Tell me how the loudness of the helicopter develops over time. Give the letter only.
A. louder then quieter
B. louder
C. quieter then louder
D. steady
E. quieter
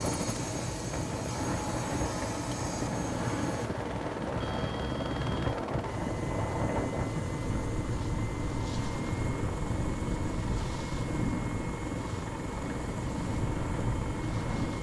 D.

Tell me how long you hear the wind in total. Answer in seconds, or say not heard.
15 s.